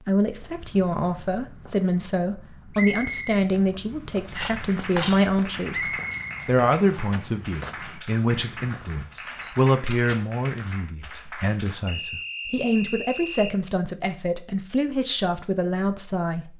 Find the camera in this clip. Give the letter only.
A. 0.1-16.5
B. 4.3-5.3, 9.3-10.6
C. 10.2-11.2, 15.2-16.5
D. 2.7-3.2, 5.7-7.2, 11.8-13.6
B.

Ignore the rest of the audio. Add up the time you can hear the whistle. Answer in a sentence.
You can hear the whistle for 4 seconds altogether.